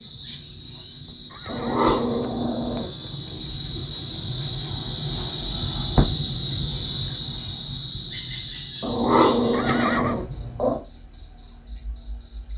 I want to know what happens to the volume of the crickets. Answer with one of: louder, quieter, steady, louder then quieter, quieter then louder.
louder then quieter.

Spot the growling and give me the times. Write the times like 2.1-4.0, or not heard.
1.4-2.9, 8.8-10.8.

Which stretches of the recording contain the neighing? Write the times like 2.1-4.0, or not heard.
1.3-3.0, 9.5-10.2.